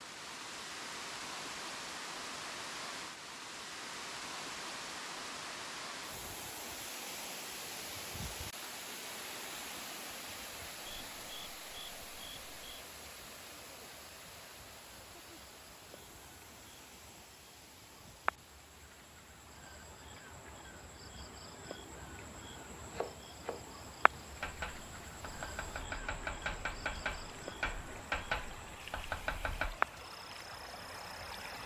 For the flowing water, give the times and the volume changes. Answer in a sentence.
You can hear the flowing water from 0.0 to 31.6 s, getting quieter then louder.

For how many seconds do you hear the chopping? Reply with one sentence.
The chopping can be heard for 7 seconds in total.